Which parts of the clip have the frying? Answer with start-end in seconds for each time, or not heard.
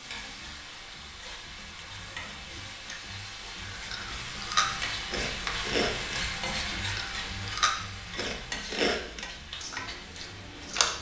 0.0-10.9.